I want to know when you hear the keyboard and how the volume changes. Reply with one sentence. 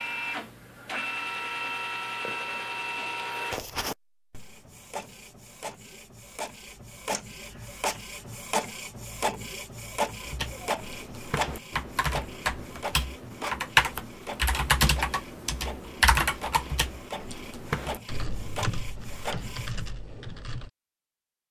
The keyboard can be heard from 10.2 to 20.7 s, getting louder then quieter.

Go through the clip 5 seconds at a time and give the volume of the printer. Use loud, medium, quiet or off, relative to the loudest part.
loud, loud, loud, medium, off.